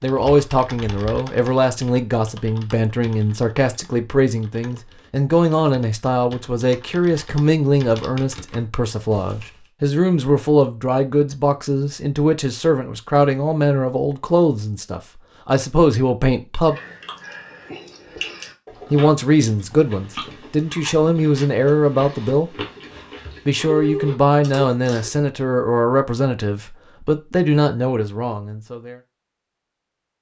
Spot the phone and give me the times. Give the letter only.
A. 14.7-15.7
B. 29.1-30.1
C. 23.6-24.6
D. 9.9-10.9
C.